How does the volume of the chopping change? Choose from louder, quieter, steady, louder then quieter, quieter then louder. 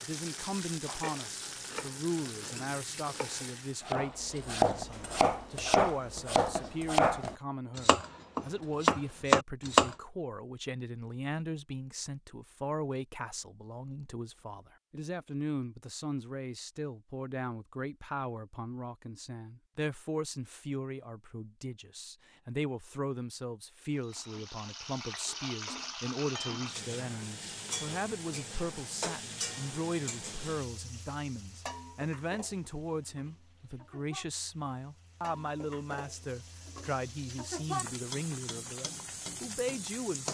louder.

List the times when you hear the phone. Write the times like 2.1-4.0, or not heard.
not heard.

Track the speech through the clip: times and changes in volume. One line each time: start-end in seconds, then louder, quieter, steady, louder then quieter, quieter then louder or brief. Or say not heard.
0.0-40.2 steady.